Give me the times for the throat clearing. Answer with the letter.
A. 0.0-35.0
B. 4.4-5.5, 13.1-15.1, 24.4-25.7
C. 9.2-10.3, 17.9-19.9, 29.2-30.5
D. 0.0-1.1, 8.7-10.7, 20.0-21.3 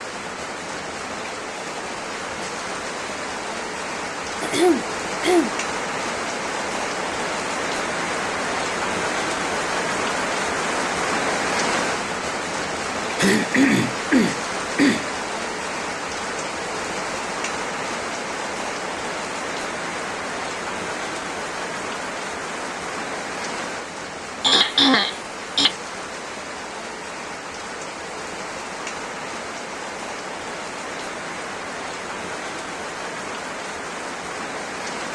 B.